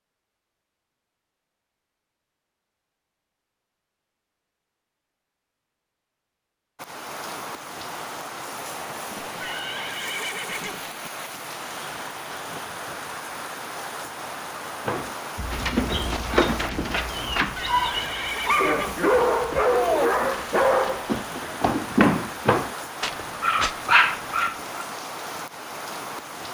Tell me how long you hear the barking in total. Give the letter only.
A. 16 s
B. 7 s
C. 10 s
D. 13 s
C.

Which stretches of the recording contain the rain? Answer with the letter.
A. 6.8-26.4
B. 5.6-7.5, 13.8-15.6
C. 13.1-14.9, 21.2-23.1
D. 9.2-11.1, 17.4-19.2
A.